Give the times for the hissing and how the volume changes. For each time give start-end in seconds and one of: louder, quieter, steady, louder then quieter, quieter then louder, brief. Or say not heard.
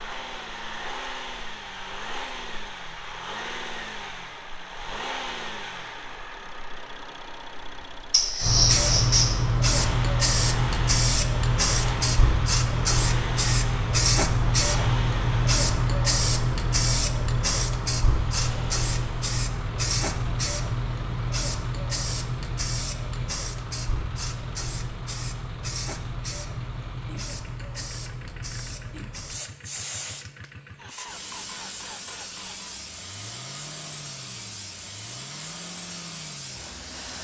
8.4-37.1 quieter.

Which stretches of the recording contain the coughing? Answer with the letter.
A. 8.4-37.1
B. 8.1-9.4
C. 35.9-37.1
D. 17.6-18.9
B.